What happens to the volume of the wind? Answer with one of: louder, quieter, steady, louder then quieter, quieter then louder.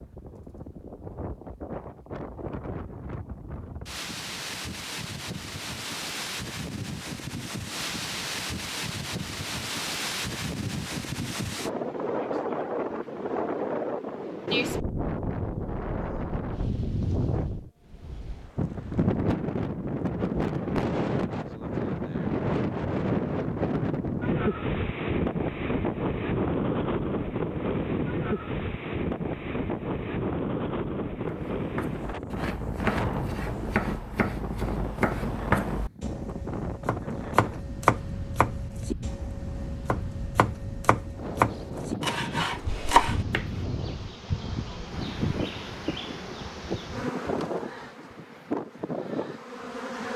louder then quieter.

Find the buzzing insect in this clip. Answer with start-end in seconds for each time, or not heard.
42.5-50.1.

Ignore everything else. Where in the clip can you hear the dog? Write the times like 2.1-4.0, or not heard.
not heard.